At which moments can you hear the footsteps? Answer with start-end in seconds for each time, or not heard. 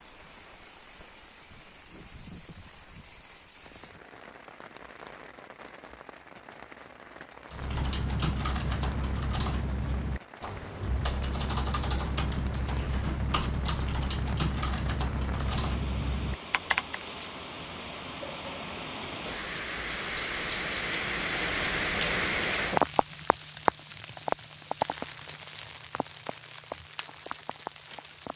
not heard.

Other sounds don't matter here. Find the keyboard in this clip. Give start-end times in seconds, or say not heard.
7.5-17.0.